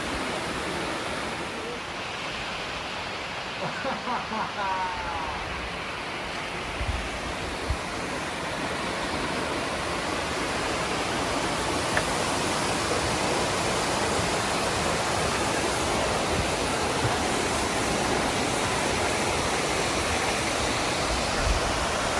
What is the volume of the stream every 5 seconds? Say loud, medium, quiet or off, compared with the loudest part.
medium, medium, loud, loud, loud.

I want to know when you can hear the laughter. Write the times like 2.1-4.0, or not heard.
3.6-5.5.